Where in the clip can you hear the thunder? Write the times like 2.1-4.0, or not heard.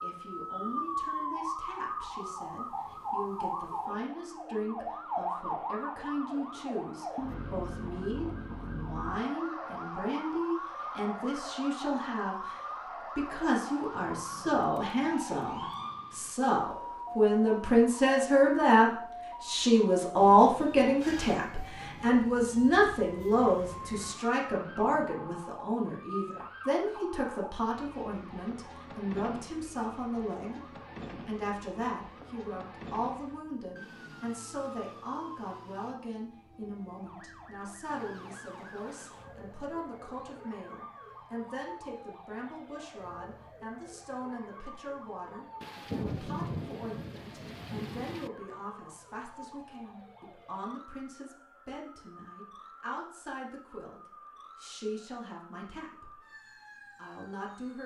13.7-16.4, 23.6-25.4, 45.6-48.3.